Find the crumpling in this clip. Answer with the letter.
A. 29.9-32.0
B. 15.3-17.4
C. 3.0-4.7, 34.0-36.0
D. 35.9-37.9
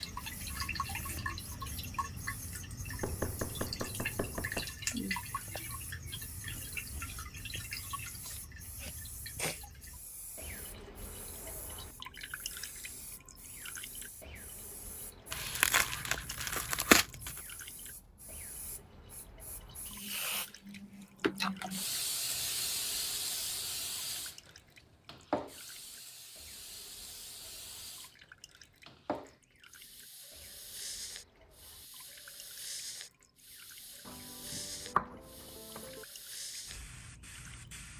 B.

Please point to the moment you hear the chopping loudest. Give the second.
35 s.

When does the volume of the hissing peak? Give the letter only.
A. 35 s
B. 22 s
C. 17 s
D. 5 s
B.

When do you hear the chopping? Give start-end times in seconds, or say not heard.
3.0-4.7, 34.0-36.0.